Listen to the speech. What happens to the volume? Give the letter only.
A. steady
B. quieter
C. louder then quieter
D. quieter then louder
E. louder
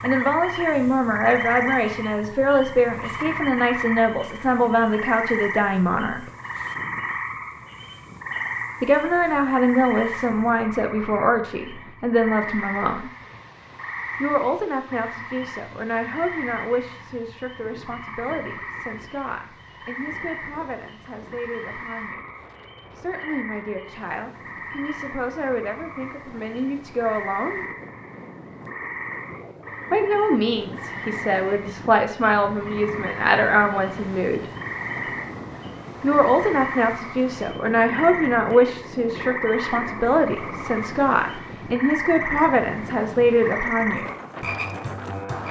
D.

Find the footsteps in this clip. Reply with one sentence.
You can't hear the footsteps here.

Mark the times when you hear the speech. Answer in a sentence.
The speech can be heard from 0.0 to 6.3 s, from 8.8 to 13.1 s, from 14.2 to 22.2 s, from 22.9 to 27.6 s, from 29.9 to 34.5 s and from 36.0 to 44.1 s.